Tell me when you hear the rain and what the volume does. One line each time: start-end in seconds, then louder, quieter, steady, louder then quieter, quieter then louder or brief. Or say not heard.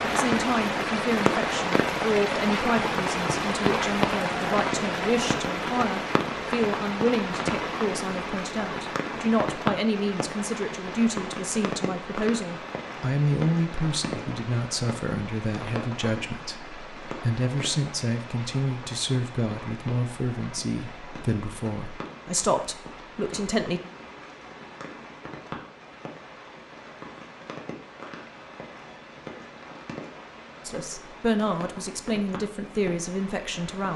0.0-33.9 quieter.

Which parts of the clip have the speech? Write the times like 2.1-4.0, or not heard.
0.0-23.8, 30.6-33.9.